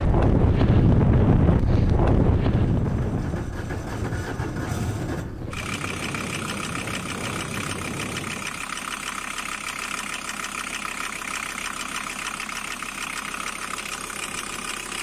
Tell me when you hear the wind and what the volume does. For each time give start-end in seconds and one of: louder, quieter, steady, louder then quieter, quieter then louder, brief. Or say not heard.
0.0-8.7 quieter.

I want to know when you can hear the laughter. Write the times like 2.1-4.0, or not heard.
not heard.